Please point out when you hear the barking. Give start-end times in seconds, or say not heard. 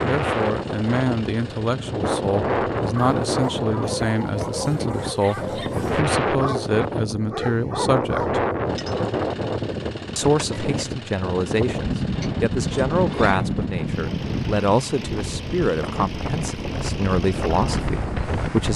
2.8-8.4.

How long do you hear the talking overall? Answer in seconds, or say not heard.
17 s.